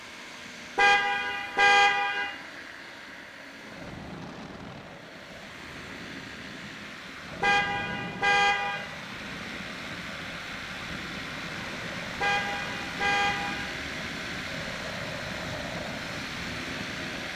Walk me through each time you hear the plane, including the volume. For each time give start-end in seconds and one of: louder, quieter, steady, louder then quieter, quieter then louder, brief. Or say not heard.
0.0-17.3 louder.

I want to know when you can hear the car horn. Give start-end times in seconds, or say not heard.
0.8-2.3, 7.4-8.8, 12.2-13.8.